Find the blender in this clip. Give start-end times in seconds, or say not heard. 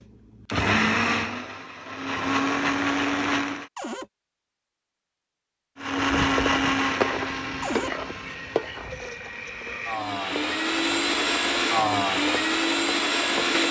0.3-3.7, 5.8-13.6.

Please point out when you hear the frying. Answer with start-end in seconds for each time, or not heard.
6.0-13.6.